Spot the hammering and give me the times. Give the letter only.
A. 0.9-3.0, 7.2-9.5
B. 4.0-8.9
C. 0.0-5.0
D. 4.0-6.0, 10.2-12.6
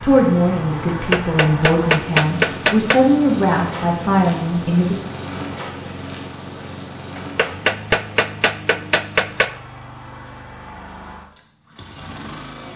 A.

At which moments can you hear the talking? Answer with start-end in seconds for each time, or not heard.
0.0-5.0.